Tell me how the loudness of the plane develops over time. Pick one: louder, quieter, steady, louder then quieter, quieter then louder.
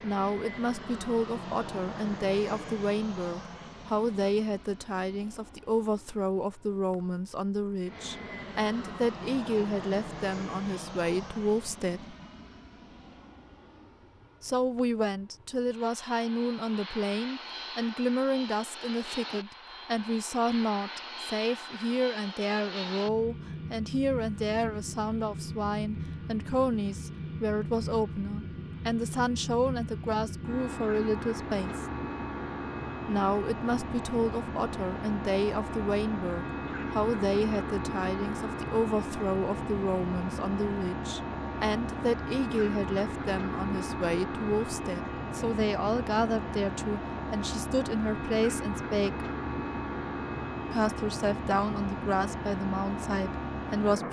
louder.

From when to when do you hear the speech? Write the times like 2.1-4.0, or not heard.
0.0-12.2, 14.4-31.9, 33.0-49.2, 50.7-54.0.